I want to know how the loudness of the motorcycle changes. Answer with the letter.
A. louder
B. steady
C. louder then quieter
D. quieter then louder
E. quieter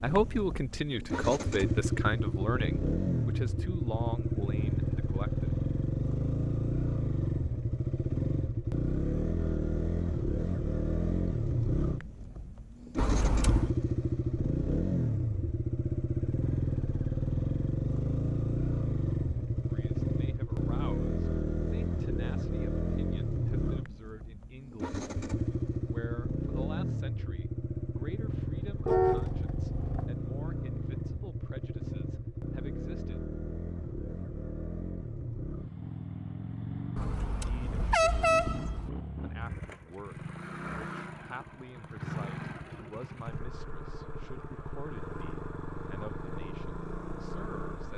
E.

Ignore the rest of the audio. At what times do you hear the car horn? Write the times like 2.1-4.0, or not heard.
12.9-13.8, 28.9-30.1, 37.0-38.9.